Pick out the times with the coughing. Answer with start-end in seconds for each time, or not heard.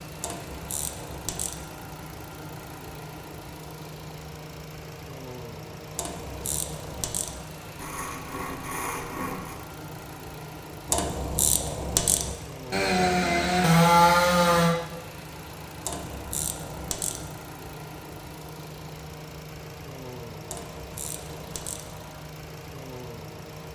not heard.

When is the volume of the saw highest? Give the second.
14 s.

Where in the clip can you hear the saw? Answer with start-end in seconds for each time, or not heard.
7.8-9.6, 12.7-14.8.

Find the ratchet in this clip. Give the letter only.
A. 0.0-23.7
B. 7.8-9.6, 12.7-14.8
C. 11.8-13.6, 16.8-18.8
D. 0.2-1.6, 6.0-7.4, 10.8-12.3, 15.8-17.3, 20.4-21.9
D.